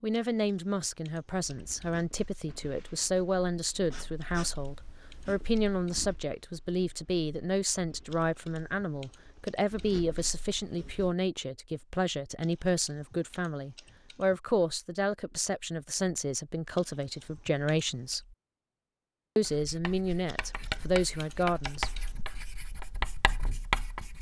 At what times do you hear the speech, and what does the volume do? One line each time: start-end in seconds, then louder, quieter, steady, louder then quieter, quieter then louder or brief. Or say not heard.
0.0-18.4 steady
19.4-21.9 brief.